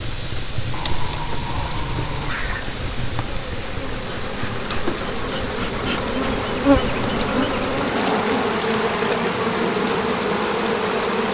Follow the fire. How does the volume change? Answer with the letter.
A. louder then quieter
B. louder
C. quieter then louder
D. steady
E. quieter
E.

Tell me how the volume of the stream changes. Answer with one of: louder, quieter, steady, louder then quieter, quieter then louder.
louder.